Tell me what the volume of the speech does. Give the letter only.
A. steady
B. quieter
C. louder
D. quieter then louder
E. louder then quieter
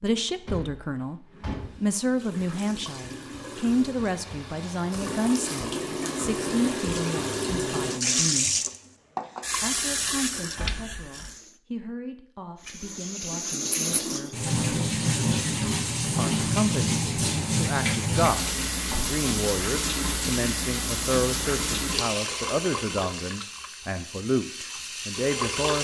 D.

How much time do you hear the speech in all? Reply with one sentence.
The speech can be heard for 23 seconds in total.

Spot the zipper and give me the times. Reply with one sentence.
You can't hear the zipper here.